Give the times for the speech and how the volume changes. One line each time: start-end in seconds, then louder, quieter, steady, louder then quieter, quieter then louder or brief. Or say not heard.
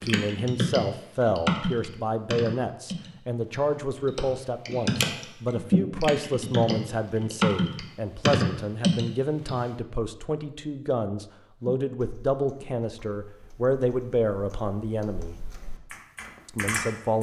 0.0-15.3 steady
16.4-17.1 brief.